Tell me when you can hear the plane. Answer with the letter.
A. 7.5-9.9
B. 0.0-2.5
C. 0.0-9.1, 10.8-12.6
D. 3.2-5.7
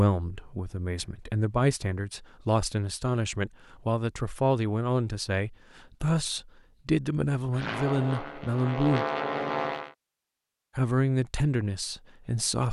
A.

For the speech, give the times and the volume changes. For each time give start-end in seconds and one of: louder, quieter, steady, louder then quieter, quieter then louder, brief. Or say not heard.
0.0-9.1 steady
10.8-12.6 brief.